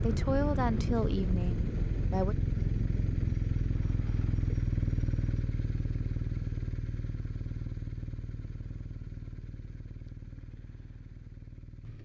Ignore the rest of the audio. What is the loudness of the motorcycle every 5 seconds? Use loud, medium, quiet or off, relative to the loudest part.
loud, medium, quiet.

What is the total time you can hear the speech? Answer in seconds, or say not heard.
2 s.